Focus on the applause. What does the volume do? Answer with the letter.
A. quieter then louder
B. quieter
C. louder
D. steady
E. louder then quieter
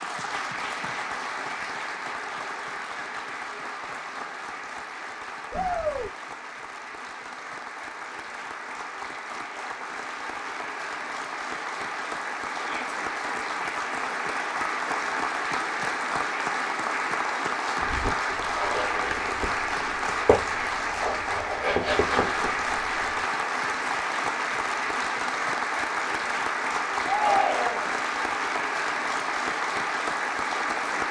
C.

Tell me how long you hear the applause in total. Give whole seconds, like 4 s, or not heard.
31 s.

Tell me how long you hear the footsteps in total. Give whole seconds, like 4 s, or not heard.
5 s.